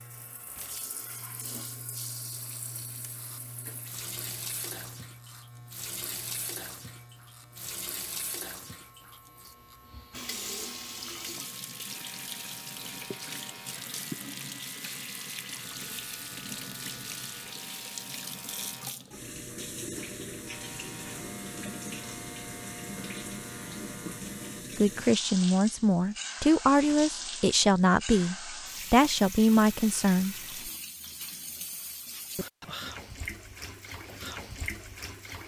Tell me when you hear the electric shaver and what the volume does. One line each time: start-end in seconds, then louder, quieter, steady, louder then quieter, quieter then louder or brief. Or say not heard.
0.0-18.9 quieter then louder
20.4-24.6 steady.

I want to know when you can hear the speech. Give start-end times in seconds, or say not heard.
24.8-30.7.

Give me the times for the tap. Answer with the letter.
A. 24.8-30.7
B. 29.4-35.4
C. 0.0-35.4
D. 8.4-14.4
C.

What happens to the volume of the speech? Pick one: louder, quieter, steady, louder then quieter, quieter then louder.
steady.